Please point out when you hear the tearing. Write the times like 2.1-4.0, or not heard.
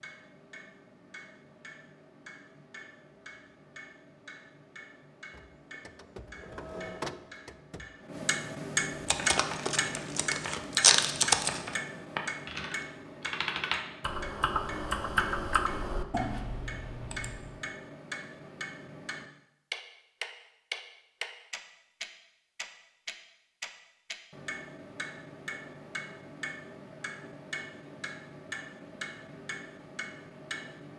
9.1-11.6.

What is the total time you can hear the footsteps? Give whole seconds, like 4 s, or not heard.
not heard.